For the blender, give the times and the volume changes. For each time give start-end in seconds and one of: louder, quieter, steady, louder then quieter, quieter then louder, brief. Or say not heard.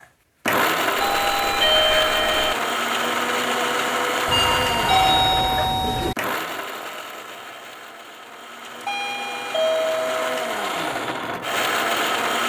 0.0-12.4 quieter then louder.